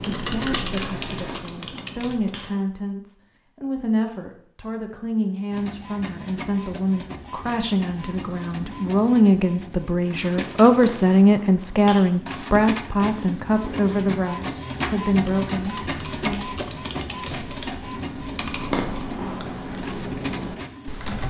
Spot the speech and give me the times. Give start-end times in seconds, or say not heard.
0.0-16.4.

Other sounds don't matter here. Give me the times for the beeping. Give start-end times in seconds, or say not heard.
not heard.